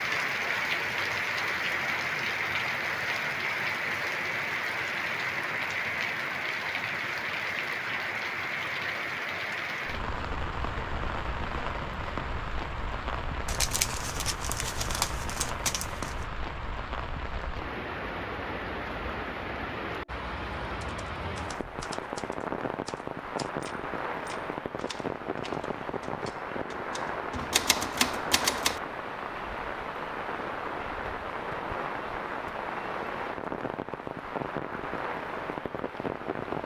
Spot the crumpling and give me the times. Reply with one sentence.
You can hear the crumpling from 13.4 to 16.2 s.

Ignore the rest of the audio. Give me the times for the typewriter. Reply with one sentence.
You can hear the typewriter from 20.8 to 28.8 s.